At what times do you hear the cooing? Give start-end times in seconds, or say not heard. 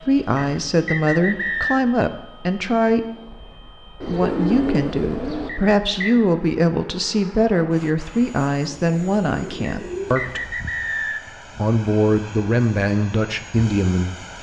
4.0-5.5, 8.6-10.6.